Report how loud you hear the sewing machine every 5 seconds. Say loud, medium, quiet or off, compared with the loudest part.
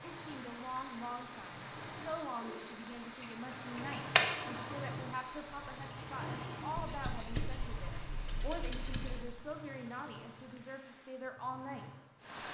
loud, loud, medium.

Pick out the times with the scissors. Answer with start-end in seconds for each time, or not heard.
2.5-4.2, 6.8-9.3.